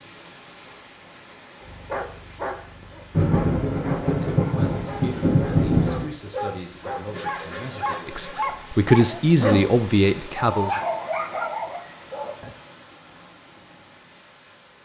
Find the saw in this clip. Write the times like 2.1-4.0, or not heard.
7.0-8.6.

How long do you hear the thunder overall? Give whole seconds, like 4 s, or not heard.
3 s.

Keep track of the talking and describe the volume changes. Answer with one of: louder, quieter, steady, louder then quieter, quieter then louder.
louder.